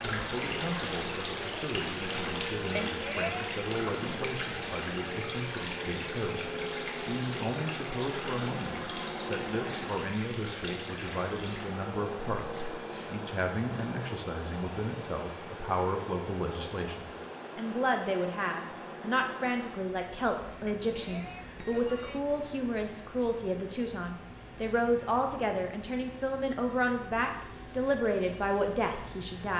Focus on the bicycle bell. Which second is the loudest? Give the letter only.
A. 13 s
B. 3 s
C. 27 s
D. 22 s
B.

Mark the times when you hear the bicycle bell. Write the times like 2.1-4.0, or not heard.
2.8-3.5, 12.2-12.9, 20.6-22.2.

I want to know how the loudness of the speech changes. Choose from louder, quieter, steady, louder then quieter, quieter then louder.
louder.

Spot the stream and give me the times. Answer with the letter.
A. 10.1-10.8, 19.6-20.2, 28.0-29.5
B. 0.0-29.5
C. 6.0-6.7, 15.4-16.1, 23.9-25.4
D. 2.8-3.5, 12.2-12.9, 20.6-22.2
B.